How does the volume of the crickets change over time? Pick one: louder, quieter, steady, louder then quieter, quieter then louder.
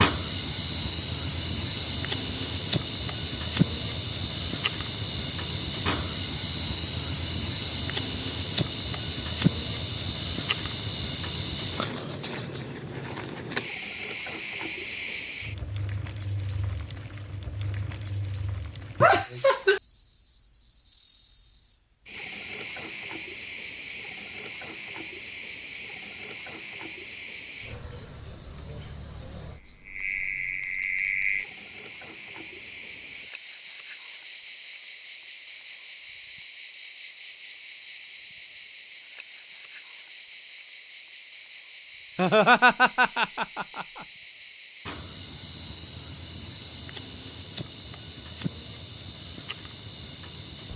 quieter.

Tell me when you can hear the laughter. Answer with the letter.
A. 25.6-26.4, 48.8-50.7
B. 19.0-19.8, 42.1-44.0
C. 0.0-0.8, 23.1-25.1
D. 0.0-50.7
B.